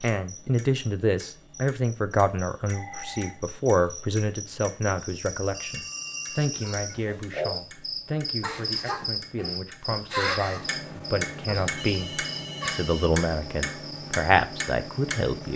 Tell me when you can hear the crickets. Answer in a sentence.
The crickets can be heard from 0.0 to 15.5 s.